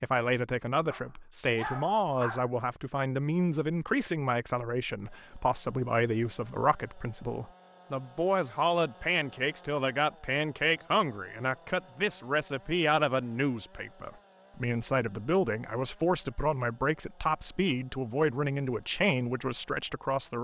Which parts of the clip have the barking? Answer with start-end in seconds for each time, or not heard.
0.9-2.5.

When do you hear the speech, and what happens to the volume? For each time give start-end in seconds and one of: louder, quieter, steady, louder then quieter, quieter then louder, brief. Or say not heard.
0.0-20.3 steady.